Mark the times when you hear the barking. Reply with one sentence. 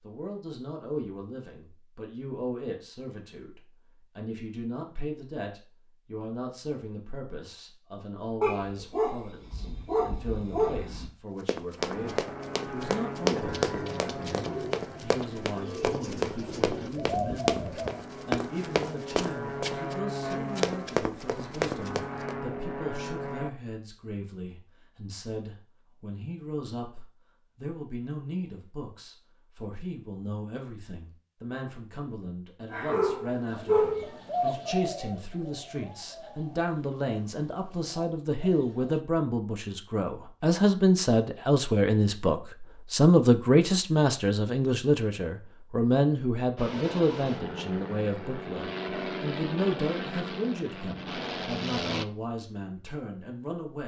The barking can be heard from 8.4 to 11.1 s and from 32.7 to 34.1 s.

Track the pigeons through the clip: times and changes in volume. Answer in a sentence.
You can hear the pigeons from 13.2 to 18.0 s, getting louder; and from 33.5 to 39.0 s, getting quieter.